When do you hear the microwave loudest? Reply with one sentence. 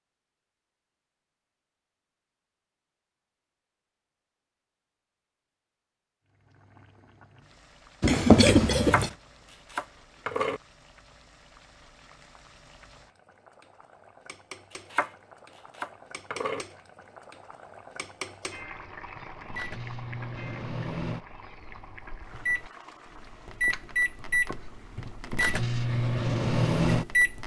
The volume of the microwave peaks at 27 seconds.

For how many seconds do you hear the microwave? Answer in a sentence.
You can hear the microwave for 8 seconds altogether.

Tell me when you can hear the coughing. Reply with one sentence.
The coughing can be heard from 8.0 to 9.1 s.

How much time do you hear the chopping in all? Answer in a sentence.
The chopping can be heard for 4 seconds in total.